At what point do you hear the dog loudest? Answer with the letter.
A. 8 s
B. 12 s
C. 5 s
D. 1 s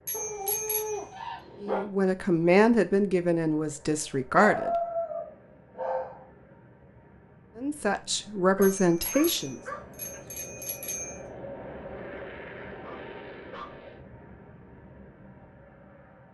C.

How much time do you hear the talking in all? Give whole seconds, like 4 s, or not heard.
5 s.